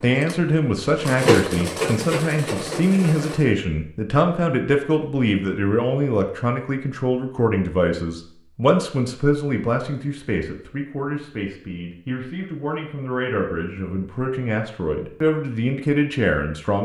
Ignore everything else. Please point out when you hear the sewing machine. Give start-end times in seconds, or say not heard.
0.0-3.5.